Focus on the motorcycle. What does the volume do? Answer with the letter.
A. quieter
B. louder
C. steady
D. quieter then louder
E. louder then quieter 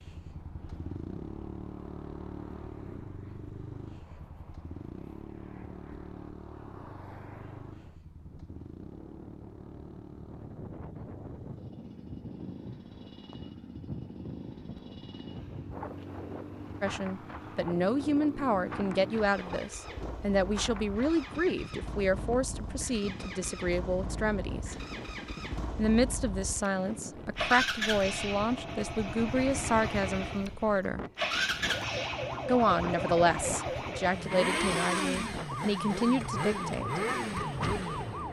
B.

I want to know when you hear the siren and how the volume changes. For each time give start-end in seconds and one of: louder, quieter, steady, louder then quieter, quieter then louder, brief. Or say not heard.
31.7-38.2 steady.